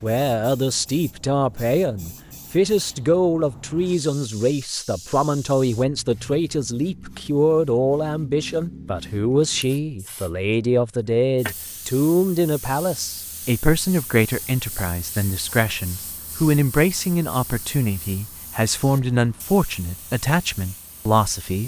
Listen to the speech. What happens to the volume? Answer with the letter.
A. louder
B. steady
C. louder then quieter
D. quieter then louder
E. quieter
B.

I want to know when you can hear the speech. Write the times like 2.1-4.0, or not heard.
0.0-21.6.